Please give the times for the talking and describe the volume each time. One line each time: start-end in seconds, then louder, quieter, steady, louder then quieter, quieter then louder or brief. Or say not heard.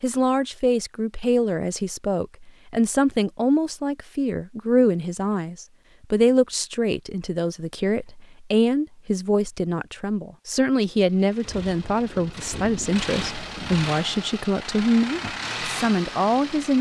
0.0-16.7 steady.